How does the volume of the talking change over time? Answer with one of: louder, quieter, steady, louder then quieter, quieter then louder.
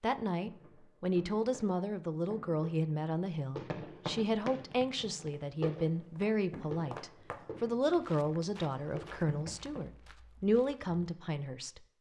steady.